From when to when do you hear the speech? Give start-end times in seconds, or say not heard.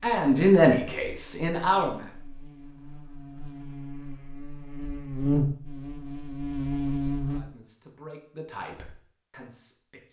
0.0-2.1, 7.3-10.0.